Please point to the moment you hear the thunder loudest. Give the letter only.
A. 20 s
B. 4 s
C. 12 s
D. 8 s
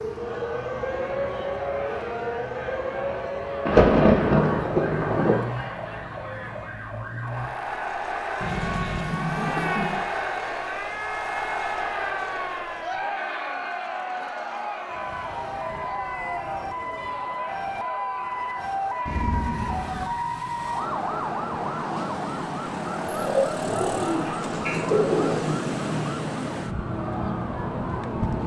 B.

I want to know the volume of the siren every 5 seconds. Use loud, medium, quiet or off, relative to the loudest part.
loud, medium, medium, loud, loud, loud.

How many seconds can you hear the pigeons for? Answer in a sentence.
You can hear the pigeons for 4 seconds altogether.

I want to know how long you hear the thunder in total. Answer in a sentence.
The thunder can be heard for 3 seconds in total.